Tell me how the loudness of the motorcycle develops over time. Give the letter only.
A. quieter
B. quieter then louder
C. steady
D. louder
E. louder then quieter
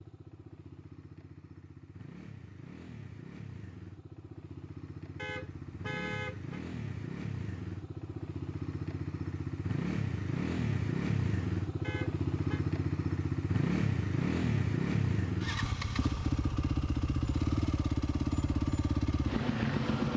D.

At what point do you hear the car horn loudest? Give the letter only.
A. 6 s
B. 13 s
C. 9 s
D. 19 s
A.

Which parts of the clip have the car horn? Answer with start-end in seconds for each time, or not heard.
5.2-6.5, 11.8-12.7.